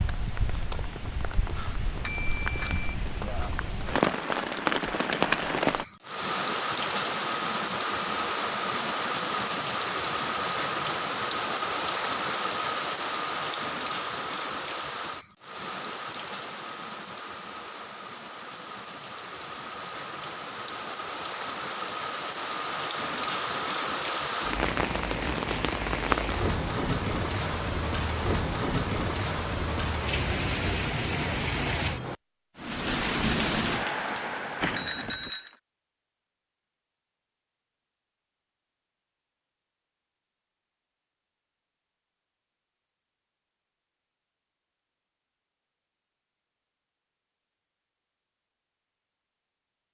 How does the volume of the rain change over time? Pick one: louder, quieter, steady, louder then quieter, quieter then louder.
quieter then louder.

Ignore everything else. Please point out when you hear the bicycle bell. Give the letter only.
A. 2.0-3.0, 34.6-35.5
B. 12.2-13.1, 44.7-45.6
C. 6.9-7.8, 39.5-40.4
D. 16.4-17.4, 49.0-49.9
A.